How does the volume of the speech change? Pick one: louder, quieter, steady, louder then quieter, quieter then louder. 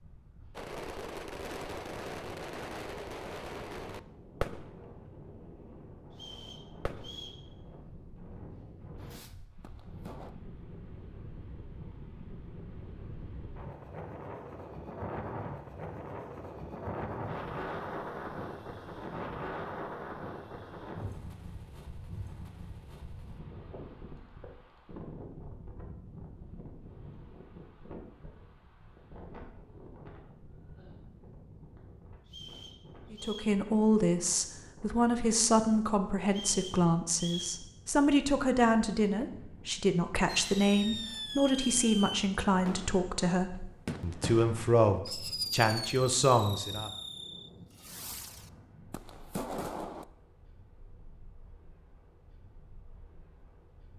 steady.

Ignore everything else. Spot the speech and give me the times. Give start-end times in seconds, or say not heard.
33.1-46.9.